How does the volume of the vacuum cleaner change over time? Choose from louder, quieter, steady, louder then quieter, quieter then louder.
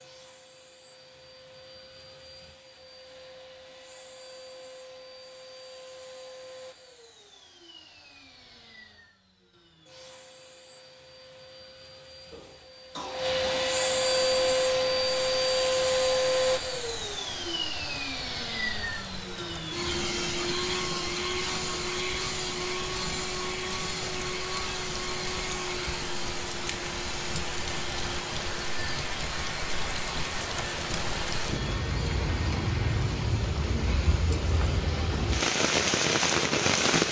louder then quieter.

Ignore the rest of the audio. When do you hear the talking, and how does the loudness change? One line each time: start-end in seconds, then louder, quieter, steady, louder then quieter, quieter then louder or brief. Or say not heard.
not heard.